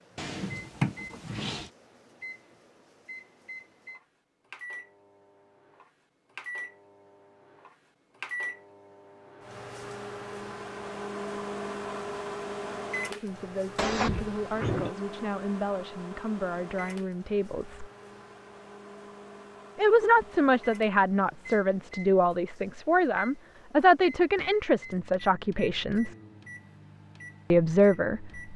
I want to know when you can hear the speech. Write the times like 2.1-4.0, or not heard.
13.2-17.9, 19.8-26.1, 27.5-28.5.